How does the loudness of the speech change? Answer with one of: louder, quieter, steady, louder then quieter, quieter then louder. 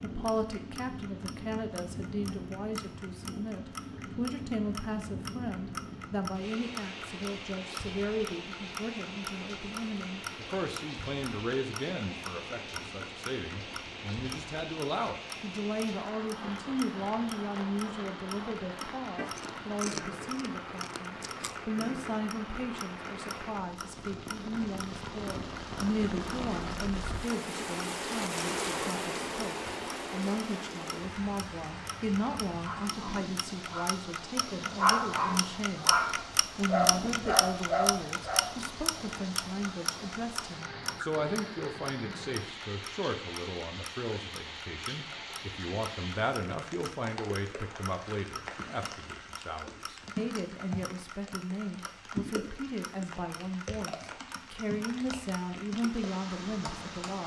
steady.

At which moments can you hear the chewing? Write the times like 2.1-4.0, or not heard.
19.1-21.6.